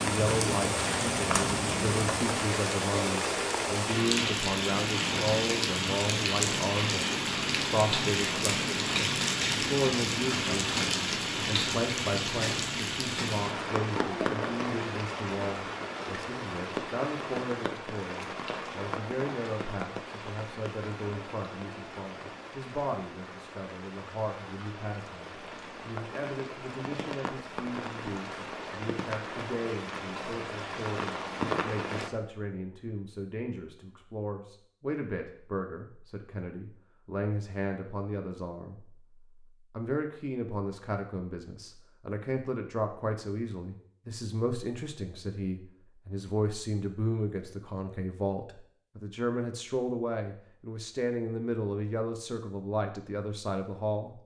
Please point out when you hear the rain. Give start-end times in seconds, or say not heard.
0.0-32.1.